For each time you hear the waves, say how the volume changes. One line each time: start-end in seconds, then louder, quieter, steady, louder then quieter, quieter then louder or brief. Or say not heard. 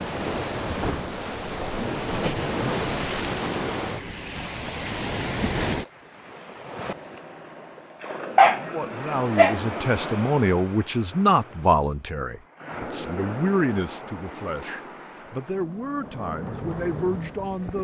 0.0-17.7 quieter.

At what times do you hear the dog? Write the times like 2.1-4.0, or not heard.
8.3-9.6.